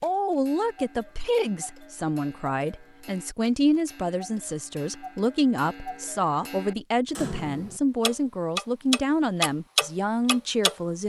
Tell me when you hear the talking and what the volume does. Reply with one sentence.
The talking can be heard from 0.0 to 11.0 s, at a steady volume.